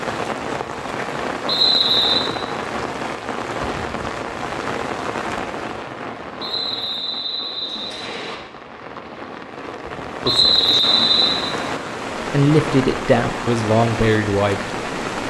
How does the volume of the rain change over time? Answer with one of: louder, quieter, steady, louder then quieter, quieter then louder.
quieter then louder.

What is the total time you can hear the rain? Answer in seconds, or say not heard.
15 s.